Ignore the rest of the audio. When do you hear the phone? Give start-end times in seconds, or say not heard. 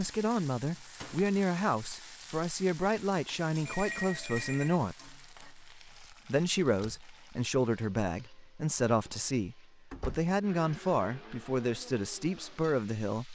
3.6-4.8.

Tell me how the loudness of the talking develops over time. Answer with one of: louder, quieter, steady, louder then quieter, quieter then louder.
steady.